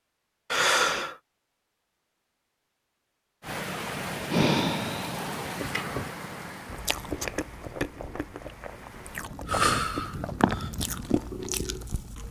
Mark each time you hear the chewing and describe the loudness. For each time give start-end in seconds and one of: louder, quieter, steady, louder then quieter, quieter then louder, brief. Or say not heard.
6.7-12.2 quieter then louder.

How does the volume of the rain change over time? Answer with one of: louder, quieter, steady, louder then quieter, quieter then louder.
quieter then louder.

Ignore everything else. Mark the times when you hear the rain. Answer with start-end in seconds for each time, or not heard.
3.4-12.2.